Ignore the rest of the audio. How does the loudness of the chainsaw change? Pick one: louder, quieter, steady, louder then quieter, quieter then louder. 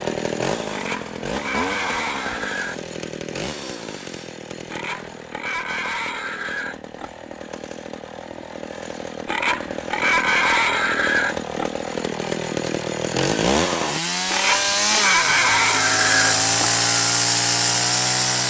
quieter then louder.